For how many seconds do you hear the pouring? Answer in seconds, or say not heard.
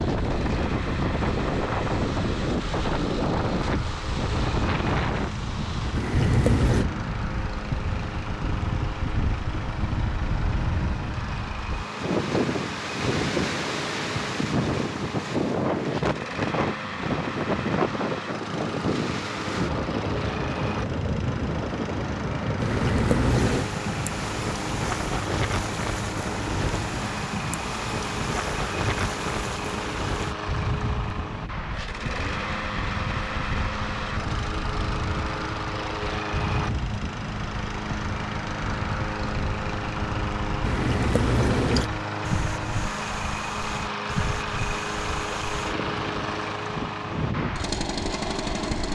3 s.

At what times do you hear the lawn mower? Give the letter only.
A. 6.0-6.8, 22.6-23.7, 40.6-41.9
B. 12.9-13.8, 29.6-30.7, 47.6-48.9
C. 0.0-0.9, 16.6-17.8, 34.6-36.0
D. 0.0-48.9
D.